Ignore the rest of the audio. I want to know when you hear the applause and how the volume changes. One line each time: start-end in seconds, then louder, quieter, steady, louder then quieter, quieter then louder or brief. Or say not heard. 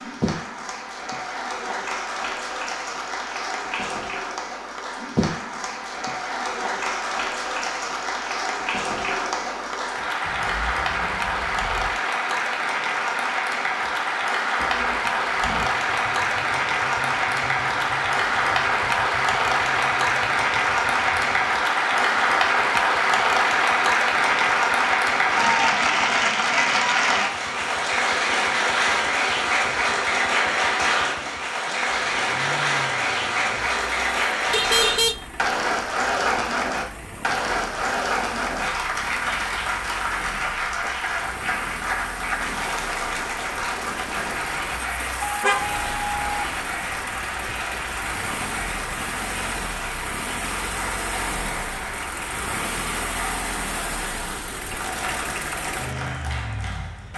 0.0-57.1 louder then quieter.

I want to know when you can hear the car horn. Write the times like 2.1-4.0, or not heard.
10.2-12.0, 34.5-35.1, 45.2-46.2.